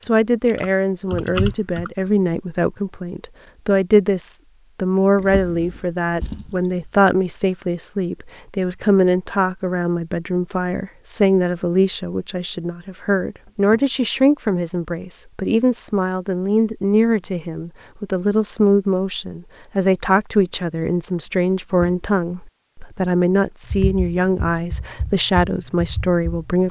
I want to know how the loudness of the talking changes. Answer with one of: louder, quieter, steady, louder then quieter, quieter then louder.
steady.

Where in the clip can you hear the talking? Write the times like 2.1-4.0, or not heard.
0.0-26.6.